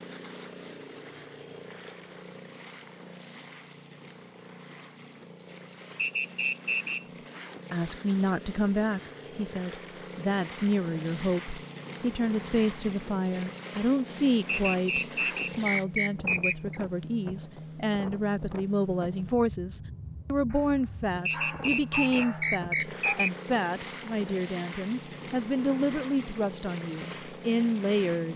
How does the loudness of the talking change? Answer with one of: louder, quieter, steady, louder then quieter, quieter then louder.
steady.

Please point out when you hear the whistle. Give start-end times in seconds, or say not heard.
6.0-7.0, 14.4-16.8, 21.2-23.3.